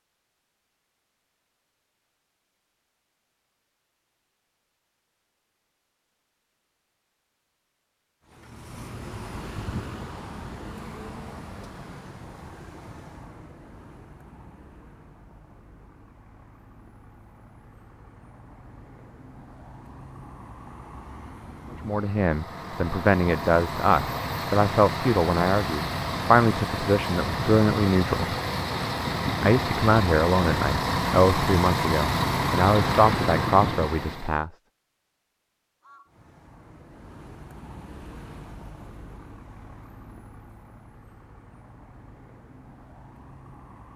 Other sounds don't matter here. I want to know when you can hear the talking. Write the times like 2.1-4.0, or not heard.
21.9-28.4, 29.4-34.5.